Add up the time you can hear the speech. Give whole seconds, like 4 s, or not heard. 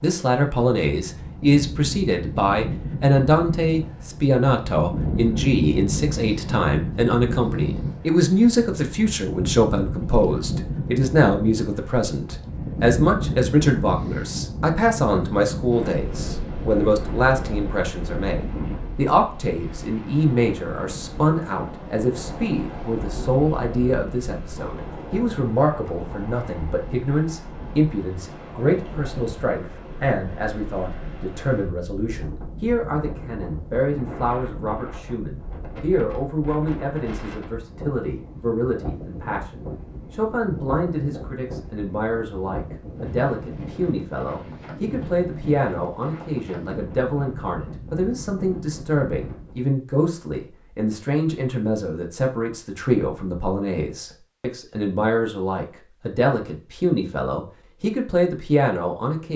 59 s.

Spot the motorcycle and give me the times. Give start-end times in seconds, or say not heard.
not heard.